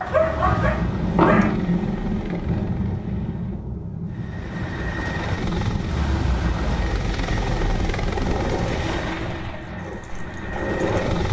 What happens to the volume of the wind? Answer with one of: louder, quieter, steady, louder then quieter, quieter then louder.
quieter.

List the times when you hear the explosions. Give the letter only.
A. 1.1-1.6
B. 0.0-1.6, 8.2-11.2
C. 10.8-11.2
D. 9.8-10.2
A.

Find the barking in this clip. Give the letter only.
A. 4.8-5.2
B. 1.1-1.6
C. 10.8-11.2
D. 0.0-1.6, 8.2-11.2
D.